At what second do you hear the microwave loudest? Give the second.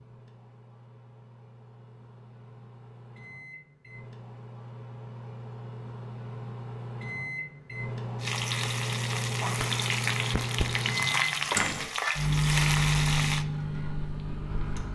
13 s.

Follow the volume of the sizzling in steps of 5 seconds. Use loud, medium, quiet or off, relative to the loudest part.
off, loud, loud.